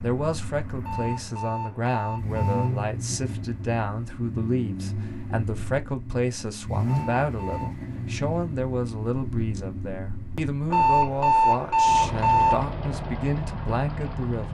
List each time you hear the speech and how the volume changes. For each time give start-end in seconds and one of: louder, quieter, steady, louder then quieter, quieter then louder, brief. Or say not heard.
0.0-14.4 steady.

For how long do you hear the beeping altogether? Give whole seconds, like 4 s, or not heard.
5 s.